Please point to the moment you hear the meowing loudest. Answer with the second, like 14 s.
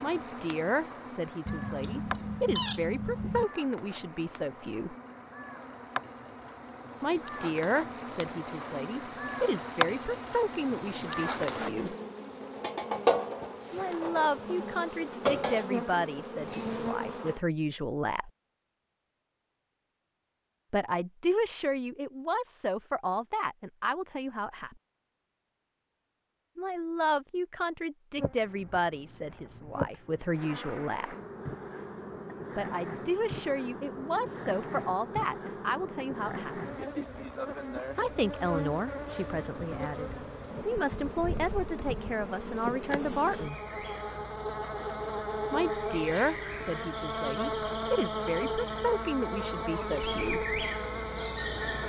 3 s.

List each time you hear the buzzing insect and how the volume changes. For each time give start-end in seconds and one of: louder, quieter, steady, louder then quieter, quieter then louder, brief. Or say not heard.
0.0-17.4 louder
28.1-51.8 louder.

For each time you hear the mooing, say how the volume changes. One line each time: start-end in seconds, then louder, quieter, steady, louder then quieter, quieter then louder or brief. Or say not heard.
not heard.